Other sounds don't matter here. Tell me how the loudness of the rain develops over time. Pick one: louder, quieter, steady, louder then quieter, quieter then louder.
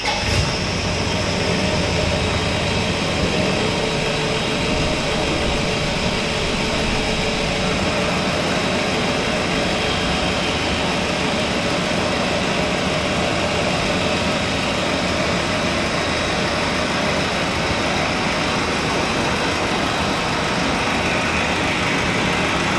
steady.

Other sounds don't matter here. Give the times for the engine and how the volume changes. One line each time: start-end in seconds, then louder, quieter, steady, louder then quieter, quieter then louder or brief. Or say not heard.
0.0-22.7 steady.